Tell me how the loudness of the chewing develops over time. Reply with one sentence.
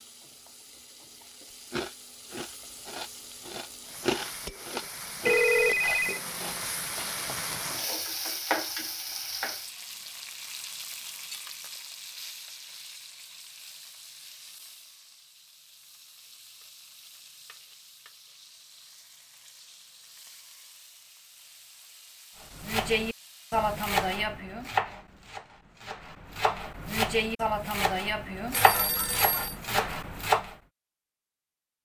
The volume of the chewing goes up, then down.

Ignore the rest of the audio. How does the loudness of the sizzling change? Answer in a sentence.
The volume of the sizzling goes up, then down.